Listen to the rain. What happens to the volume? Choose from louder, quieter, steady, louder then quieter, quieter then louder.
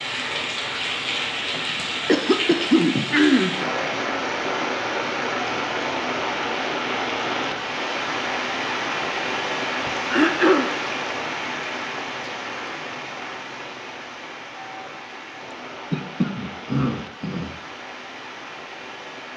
quieter.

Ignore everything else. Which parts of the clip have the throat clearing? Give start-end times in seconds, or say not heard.
1.5-3.5, 9.8-10.7, 15.9-17.5.